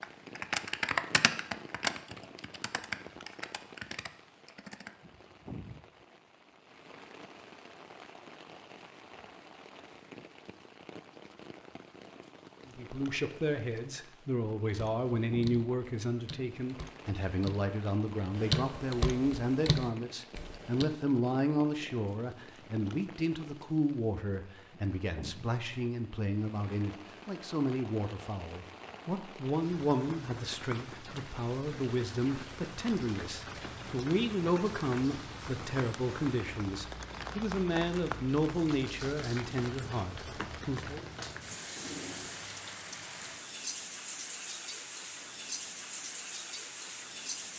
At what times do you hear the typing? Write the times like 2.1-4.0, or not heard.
0.0-4.9, 14.7-20.9.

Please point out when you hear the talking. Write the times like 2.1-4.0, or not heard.
12.7-41.0.